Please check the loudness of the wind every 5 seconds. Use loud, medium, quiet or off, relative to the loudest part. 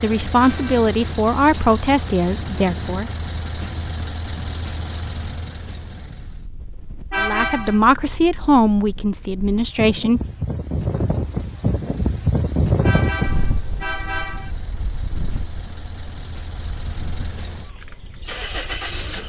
quiet, quiet, loud, quiet.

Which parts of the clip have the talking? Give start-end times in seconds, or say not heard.
0.0-3.1, 7.2-10.2.